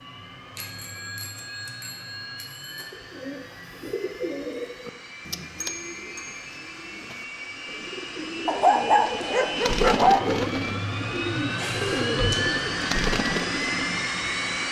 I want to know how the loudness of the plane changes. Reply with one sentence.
The volume of the plane goes up.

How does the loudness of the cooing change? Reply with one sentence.
The volume of the cooing goes down, then up.